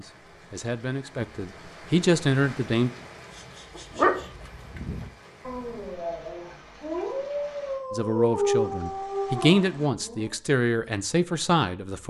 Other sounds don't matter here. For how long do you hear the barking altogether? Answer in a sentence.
The barking can be heard for 7 seconds in total.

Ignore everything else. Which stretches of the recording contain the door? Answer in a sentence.
The door can't be heard in this clip.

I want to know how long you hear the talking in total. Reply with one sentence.
You can hear the talking for 7 seconds altogether.